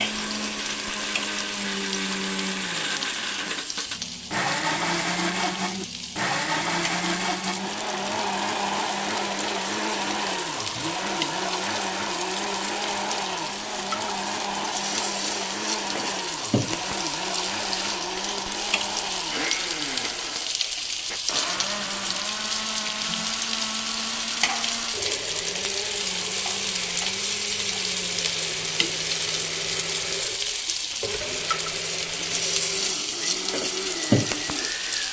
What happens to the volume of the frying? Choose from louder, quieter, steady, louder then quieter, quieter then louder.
louder.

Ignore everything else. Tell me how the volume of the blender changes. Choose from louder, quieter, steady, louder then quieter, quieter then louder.
quieter.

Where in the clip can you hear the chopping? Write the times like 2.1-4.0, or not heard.
not heard.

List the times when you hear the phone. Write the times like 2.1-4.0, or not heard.
not heard.